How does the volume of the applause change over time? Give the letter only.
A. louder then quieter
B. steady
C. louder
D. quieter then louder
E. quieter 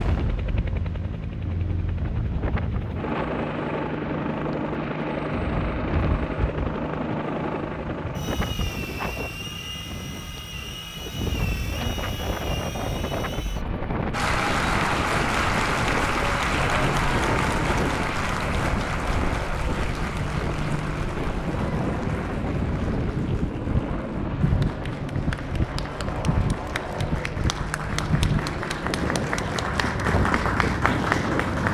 D.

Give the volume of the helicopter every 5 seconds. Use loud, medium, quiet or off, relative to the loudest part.
loud, loud, medium, loud, loud, loud, loud.